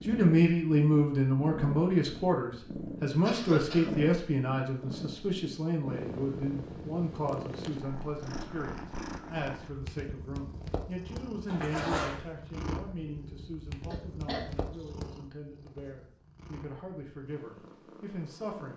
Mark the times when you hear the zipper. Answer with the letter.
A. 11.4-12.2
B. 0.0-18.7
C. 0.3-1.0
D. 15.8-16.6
A.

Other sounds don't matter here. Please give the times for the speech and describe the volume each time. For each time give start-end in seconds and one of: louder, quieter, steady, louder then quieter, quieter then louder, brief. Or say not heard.
0.0-18.7 quieter.